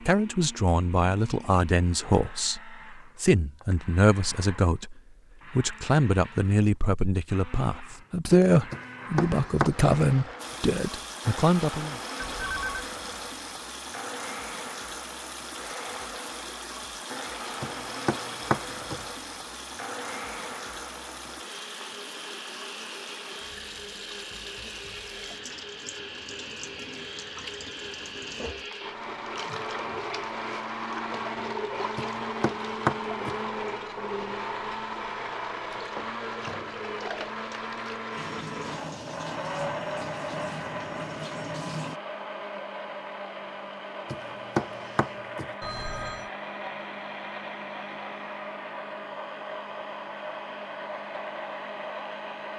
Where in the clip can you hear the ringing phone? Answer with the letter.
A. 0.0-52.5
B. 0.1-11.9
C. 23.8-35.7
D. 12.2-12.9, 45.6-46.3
D.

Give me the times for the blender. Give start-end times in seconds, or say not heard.
0.0-52.5.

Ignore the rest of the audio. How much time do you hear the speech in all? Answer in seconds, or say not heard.
12 s.